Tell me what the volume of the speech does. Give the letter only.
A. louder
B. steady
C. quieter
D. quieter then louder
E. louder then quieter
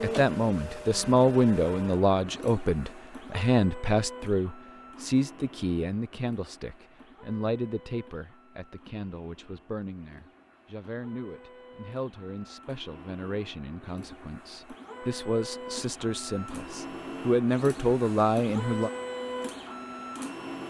D.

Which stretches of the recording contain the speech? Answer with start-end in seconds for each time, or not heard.
0.0-18.9.